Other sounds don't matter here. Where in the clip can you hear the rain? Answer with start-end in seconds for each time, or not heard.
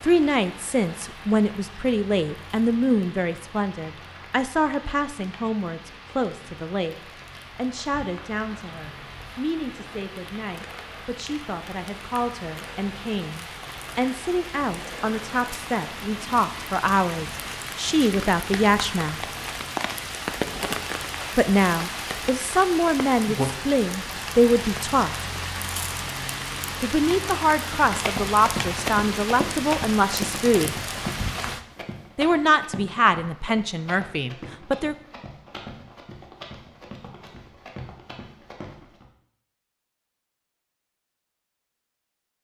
0.0-31.6.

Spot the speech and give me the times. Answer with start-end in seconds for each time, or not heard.
0.0-7.0, 7.5-19.2, 21.4-25.2, 26.8-30.8, 32.1-35.0.